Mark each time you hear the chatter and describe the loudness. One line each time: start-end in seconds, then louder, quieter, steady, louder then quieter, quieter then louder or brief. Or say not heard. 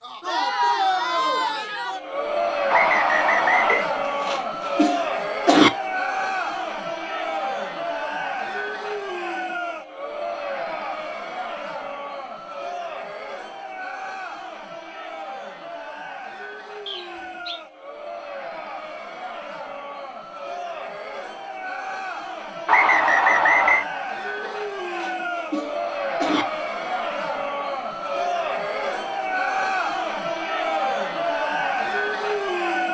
0.0-32.8 quieter then louder.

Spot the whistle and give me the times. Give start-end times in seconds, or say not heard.
2.7-3.9, 16.9-17.6, 22.6-23.9.